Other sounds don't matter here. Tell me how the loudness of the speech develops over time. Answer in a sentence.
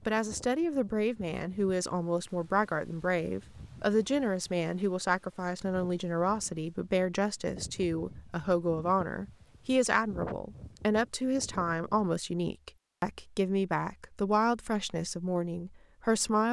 The volume of the speech stays about the same.